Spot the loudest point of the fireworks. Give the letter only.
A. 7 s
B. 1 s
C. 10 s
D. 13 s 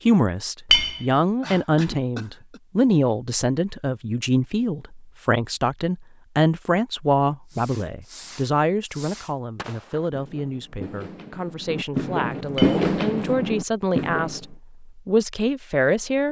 D.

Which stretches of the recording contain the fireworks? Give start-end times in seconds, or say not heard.
7.5-14.4.